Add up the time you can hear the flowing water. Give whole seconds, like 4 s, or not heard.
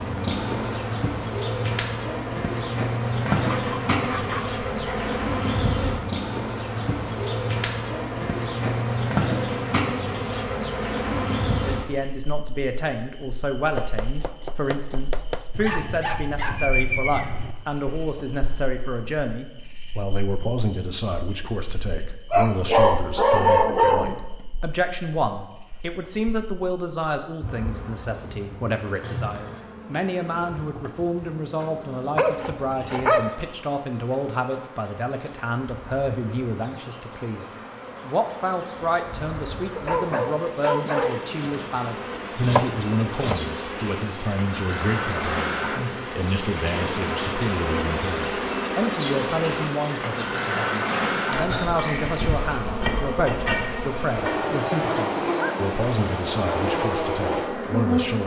not heard.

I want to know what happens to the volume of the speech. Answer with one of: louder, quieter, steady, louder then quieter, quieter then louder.
steady.